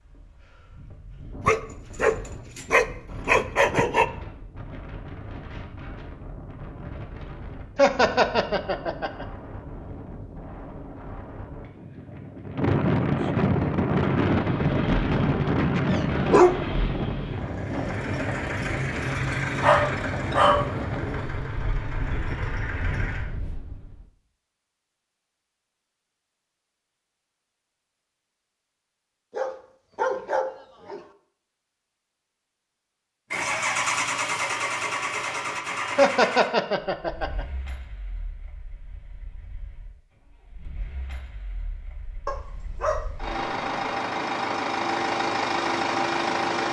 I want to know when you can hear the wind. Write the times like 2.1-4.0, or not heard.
0.0-24.1.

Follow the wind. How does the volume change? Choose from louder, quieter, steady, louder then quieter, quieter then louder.
louder then quieter.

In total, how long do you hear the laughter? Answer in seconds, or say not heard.
3 s.